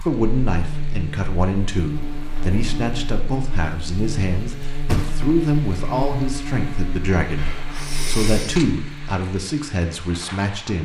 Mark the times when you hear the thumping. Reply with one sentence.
You can hear the thumping from 4.8 to 5.3 s.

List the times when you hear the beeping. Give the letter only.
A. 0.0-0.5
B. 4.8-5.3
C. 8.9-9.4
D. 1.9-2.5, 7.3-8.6
D.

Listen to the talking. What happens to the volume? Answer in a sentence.
The volume of the talking stays about the same.